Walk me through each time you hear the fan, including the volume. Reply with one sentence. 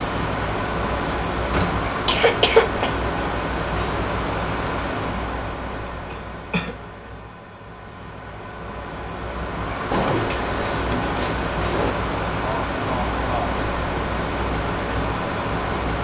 The fan can be heard from 0.0 to 15.9 s, getting quieter then louder.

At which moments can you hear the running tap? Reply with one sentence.
You can't hear the running tap here.